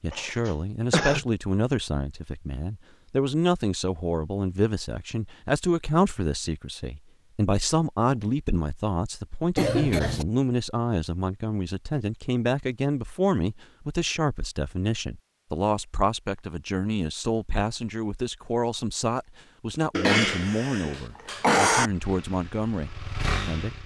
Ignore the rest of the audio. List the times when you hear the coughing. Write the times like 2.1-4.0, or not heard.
0.1-1.2, 9.6-10.2, 19.9-21.9.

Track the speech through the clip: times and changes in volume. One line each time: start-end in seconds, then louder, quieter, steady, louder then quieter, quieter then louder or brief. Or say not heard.
0.0-23.8 steady.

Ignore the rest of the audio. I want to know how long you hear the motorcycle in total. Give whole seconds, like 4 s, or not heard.
2 s.